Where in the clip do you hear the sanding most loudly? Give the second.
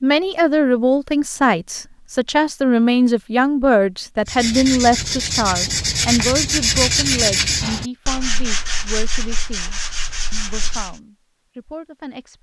7 s.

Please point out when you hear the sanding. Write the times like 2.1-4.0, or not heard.
4.2-11.0.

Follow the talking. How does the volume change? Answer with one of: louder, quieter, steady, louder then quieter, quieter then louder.
quieter.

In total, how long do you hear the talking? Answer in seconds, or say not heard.
12 s.